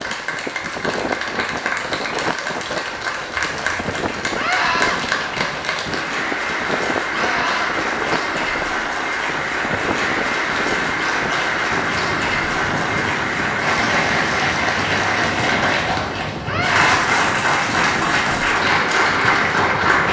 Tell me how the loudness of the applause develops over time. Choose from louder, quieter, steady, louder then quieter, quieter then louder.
louder.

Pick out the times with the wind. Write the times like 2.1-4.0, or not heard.
0.0-20.0.